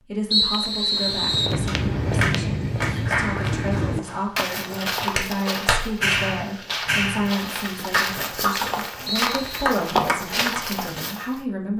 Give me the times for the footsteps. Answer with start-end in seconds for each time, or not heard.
0.9-11.4.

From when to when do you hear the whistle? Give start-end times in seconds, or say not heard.
0.3-1.6, 9.1-9.6.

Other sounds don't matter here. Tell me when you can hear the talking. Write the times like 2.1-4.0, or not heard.
0.0-11.7.